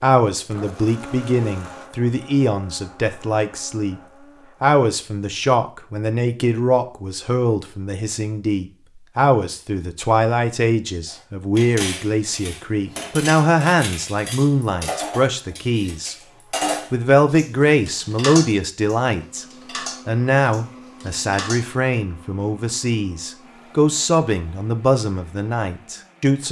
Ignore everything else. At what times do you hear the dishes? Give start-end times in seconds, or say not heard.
11.1-21.6.